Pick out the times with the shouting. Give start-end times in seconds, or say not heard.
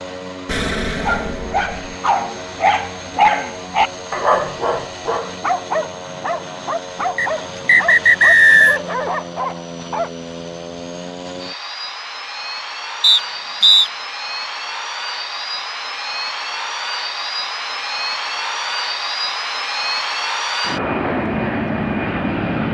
not heard.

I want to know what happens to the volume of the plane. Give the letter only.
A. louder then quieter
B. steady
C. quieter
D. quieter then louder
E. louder
E.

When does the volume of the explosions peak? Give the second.
1 s.